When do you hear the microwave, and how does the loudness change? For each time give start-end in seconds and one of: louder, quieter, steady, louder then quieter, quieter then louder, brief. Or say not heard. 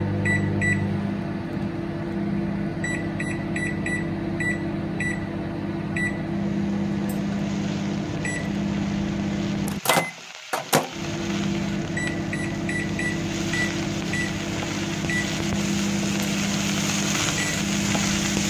0.0-18.4 steady.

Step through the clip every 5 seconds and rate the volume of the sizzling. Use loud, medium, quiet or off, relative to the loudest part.
off, quiet, medium, loud.